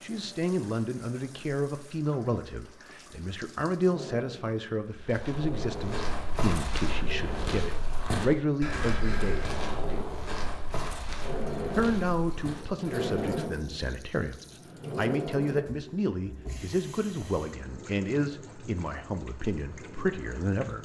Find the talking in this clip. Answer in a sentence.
The talking can be heard from 0.0 to 9.6 s, from 11.8 to 14.3 s and from 14.9 to 20.8 s.